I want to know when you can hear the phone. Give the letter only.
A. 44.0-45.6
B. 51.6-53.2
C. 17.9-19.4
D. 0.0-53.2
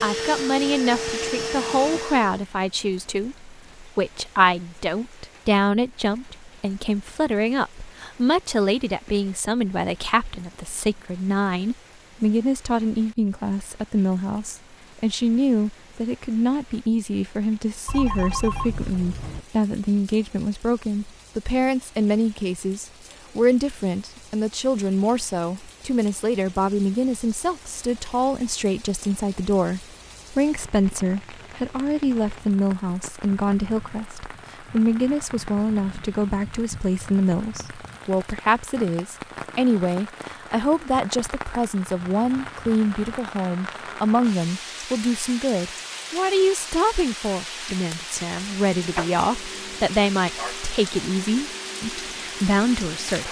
C.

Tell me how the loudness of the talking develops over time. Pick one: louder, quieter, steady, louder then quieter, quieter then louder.
steady.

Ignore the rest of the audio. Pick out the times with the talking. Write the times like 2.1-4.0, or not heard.
0.0-53.2.